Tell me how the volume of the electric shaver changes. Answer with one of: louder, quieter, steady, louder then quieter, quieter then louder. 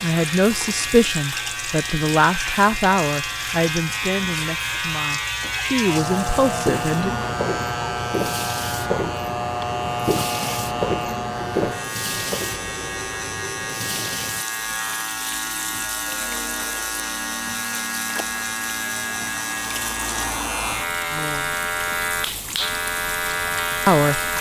steady.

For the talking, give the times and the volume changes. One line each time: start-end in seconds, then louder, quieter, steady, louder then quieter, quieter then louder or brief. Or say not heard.
0.0-7.2 quieter then louder
21.1-21.6 brief
23.9-24.3 brief.